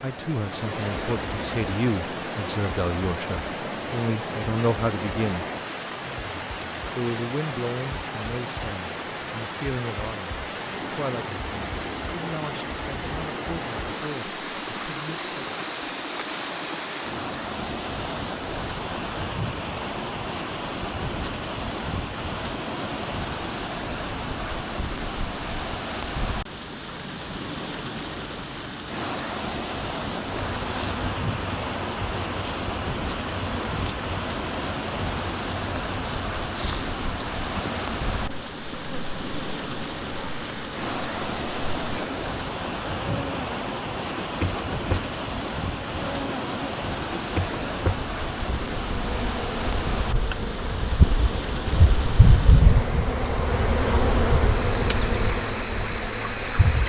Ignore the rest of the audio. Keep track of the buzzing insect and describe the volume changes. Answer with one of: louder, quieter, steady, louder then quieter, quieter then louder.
louder.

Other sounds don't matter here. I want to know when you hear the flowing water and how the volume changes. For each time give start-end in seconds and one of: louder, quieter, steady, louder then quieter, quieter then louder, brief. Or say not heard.
0.0-56.8 steady.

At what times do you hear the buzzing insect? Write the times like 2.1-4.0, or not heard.
30.1-56.8.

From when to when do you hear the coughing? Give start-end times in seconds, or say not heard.
not heard.